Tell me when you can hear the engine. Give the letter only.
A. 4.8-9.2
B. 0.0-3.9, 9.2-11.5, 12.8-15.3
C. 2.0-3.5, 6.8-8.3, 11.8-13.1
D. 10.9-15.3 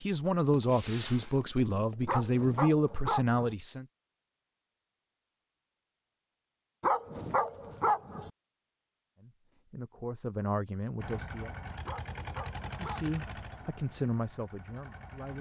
D.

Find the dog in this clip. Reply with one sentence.
You can hear the dog from 2.0 to 3.5 s, from 6.8 to 8.3 s and from 11.8 to 13.1 s.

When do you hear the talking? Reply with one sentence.
The talking can be heard from 0.0 to 3.9 s, from 9.2 to 11.5 s and from 12.8 to 15.3 s.